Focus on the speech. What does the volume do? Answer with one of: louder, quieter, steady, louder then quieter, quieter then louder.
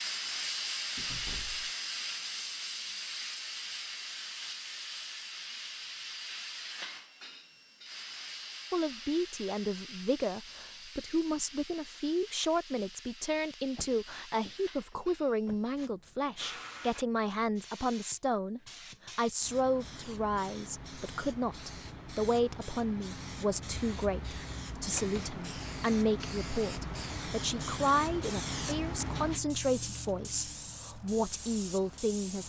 steady.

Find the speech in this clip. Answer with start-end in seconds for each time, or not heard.
8.7-32.4.